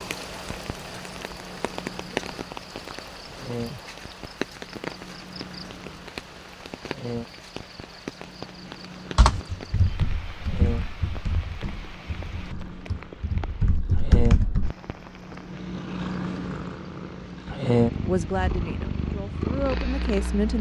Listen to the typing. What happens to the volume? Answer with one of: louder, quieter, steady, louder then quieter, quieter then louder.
quieter then louder.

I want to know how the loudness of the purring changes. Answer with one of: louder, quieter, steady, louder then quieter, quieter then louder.
louder.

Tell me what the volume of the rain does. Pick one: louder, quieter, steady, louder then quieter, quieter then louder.
quieter.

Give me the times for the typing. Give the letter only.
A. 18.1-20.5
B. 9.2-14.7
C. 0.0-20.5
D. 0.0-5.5
B.